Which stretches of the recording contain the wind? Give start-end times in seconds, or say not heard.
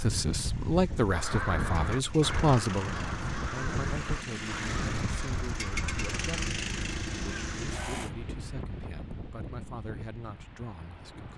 0.0-11.3.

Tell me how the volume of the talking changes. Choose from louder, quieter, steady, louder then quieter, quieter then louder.
quieter.